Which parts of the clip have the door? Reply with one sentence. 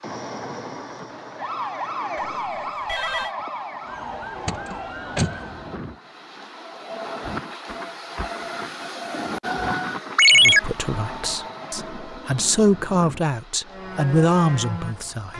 You can hear the door from 4.5 to 5.4 s.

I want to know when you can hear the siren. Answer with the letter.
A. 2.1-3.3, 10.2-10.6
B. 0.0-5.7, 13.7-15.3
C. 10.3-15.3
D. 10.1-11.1
B.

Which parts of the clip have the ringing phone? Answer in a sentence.
You can hear the ringing phone from 2.1 to 3.3 s and from 10.2 to 10.6 s.